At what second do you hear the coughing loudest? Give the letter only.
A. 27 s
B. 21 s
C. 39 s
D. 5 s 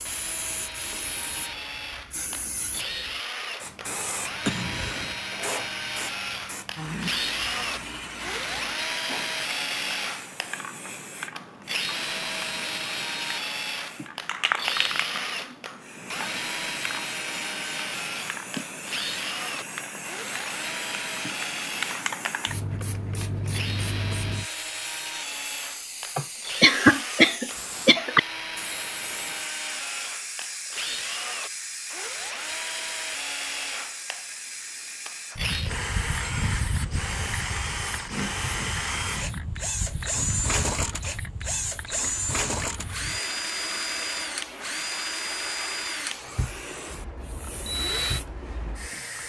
A.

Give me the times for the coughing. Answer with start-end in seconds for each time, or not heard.
4.5-5.2, 26.1-28.2.